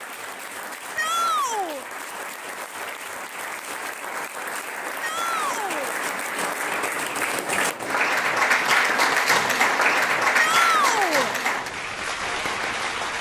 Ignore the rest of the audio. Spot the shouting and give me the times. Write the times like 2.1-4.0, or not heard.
0.9-1.9, 5.0-6.0, 10.3-11.3.